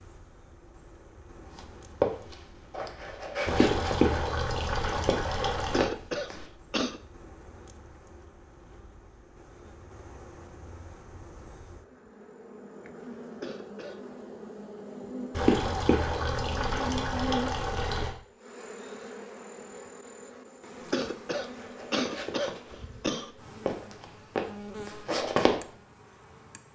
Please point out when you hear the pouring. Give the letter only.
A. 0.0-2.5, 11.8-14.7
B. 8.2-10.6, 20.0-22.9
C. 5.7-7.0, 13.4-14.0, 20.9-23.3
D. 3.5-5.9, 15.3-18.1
D.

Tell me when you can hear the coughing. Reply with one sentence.
You can hear the coughing from 5.7 to 7.0 s, from 13.4 to 14.0 s and from 20.9 to 23.3 s.